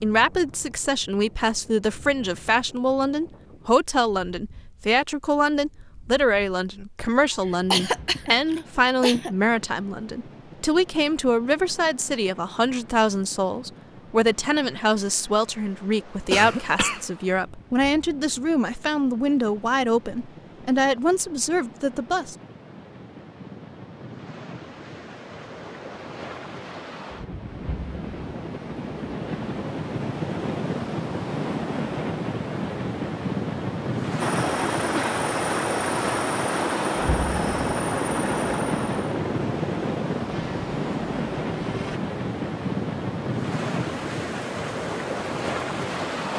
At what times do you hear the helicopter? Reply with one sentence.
The helicopter can be heard from 34.2 to 42.0 s.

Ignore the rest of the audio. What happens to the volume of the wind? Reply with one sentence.
The volume of the wind goes up.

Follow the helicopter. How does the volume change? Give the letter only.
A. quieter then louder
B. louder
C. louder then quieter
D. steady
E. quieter
E.